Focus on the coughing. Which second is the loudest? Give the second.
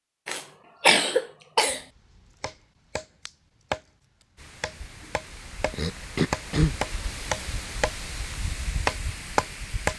1 s.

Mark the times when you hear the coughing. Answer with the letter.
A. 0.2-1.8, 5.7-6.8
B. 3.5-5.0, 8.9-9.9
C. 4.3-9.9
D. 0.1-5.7
A.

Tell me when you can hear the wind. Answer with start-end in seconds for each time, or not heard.
4.3-9.9.